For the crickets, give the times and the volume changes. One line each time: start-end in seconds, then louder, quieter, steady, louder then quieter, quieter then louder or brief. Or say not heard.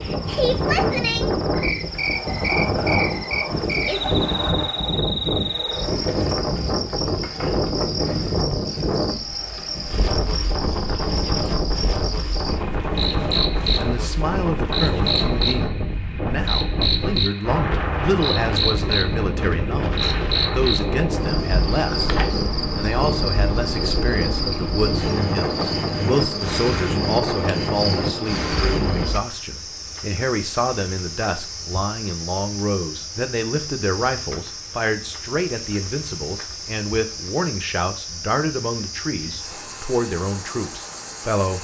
0.0-41.5 quieter.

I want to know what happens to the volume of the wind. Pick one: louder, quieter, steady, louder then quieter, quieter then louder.
steady.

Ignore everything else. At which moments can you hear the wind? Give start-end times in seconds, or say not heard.
0.0-29.1.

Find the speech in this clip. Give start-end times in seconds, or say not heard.
13.8-22.1, 22.8-41.5.